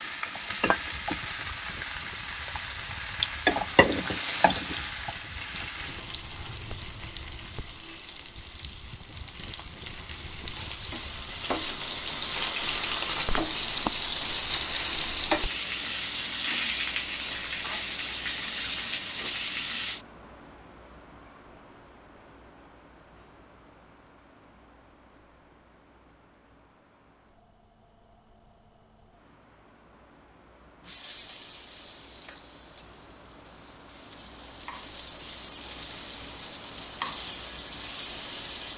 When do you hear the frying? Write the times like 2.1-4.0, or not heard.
0.0-20.0, 30.8-38.7.